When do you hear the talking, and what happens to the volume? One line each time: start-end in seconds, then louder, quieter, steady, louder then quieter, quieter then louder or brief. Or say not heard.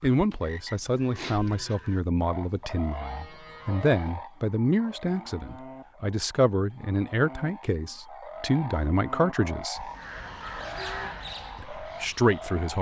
0.0-9.9 steady
11.6-12.7 brief.